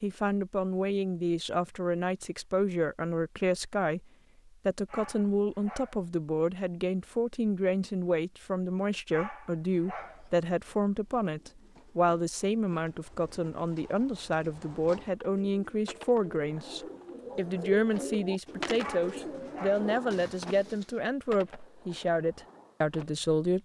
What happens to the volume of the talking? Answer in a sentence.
The volume of the talking stays about the same.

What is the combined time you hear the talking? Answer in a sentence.
The talking can be heard for 23 seconds in total.